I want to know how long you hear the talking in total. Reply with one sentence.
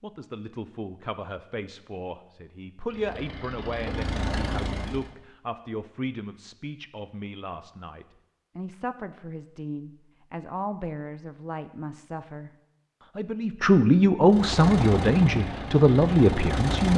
You can hear the talking for 17 seconds altogether.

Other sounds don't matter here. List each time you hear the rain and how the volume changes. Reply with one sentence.
You can't hear the rain here.